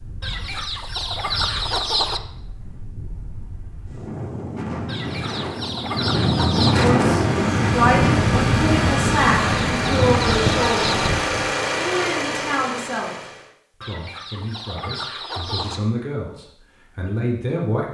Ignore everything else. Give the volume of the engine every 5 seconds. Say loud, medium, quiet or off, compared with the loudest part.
off, loud, loud, off.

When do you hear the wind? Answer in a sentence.
The wind can be heard from 0.0 to 11.5 s.